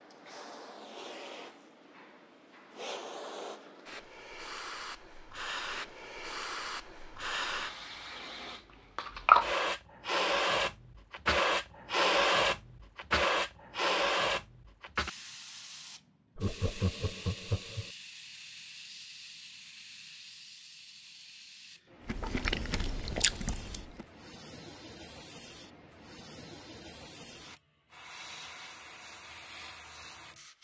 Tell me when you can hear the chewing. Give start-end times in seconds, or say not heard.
22.1-24.1.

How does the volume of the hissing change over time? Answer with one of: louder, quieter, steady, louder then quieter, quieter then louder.
louder then quieter.